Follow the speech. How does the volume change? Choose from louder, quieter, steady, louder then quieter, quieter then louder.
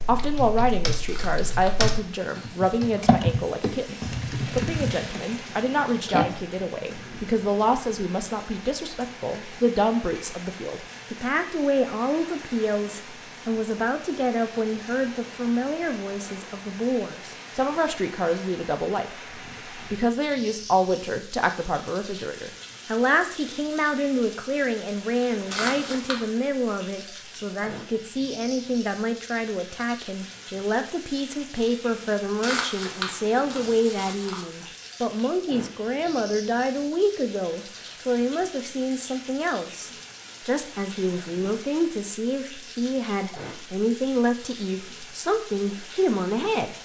steady.